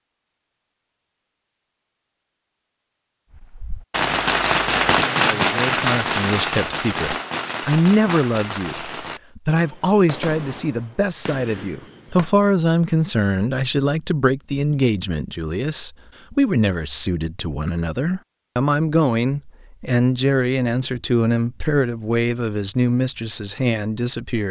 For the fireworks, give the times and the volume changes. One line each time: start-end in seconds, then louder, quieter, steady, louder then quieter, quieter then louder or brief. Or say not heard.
3.4-12.3 quieter.